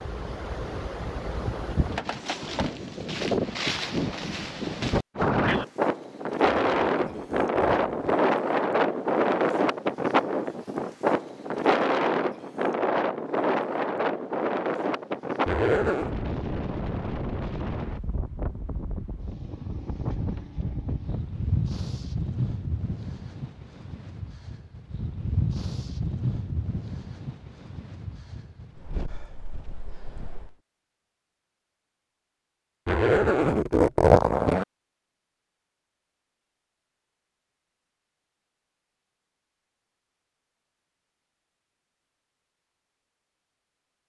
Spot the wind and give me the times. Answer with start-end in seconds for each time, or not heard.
0.0-30.6.